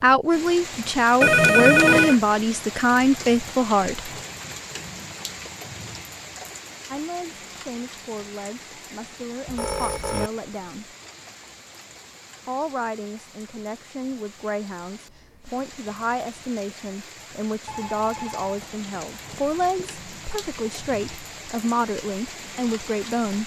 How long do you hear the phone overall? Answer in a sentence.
The phone can be heard for 4 seconds in total.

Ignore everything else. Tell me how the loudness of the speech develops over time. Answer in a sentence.
The loudness of the speech goes down, then up.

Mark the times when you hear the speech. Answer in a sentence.
You can hear the speech from 0.0 to 4.1 s, from 6.9 to 10.9 s and from 12.4 to 23.4 s.